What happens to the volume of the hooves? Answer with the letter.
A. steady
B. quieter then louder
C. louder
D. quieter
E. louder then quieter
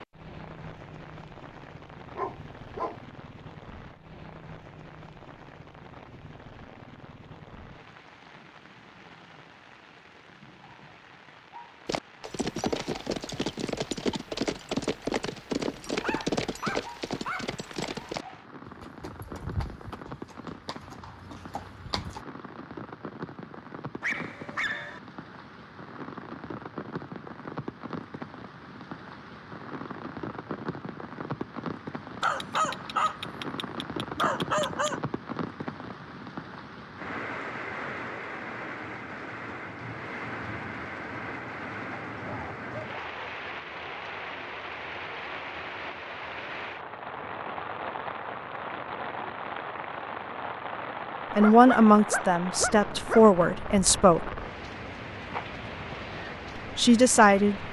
D.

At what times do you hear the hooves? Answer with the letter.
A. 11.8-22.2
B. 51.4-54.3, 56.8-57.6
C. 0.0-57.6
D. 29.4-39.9
A.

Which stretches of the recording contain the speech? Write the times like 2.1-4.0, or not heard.
51.4-54.3, 56.8-57.6.